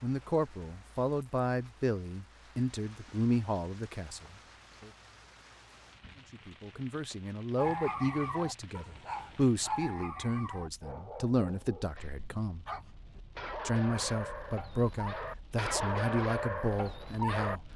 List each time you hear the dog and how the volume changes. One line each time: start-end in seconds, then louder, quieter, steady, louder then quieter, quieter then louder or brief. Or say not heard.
7.5-17.6 quieter then louder.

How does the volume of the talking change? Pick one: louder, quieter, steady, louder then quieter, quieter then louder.
steady.